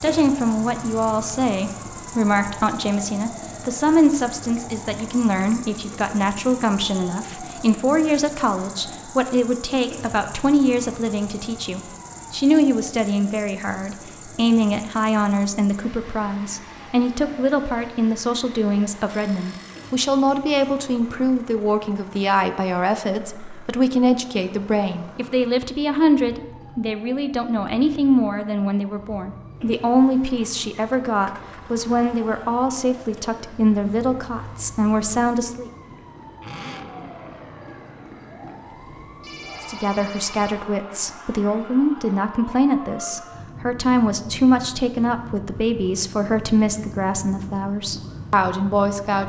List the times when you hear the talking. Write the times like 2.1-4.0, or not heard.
0.0-35.7, 39.6-49.2.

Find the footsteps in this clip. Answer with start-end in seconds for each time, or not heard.
not heard.